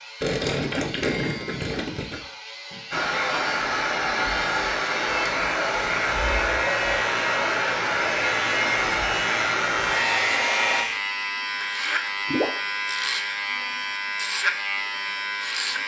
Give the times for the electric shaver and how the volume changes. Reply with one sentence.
You can hear the electric shaver from 0.0 to 15.8 s, getting louder.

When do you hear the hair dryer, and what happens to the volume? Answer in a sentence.
The hair dryer can be heard from 2.9 to 10.8 s, at a steady volume.